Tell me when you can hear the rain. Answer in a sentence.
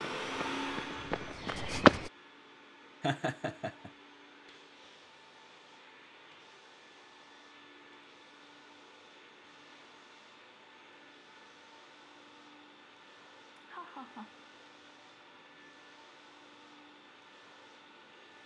The rain can't be heard in this clip.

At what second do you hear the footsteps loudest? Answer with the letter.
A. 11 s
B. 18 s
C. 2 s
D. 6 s
C.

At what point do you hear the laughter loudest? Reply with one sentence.
The loudest moment of the laughter is at 3 seconds.